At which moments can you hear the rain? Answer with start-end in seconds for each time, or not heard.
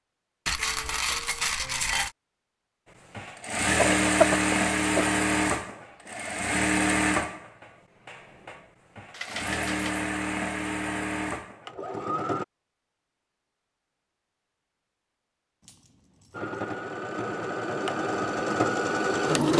not heard.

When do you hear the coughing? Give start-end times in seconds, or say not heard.
3.8-5.1.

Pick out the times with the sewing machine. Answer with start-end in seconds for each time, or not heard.
3.1-12.4, 16.3-19.5.